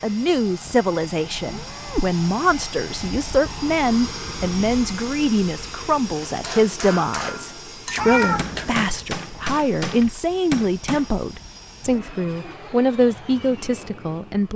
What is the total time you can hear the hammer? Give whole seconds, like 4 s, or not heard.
5 s.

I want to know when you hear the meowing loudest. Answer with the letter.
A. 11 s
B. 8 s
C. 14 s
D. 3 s
B.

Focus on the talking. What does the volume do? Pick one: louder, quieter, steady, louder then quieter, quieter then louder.
steady.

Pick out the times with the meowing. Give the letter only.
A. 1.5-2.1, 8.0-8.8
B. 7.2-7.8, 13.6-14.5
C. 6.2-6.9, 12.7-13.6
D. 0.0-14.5
A.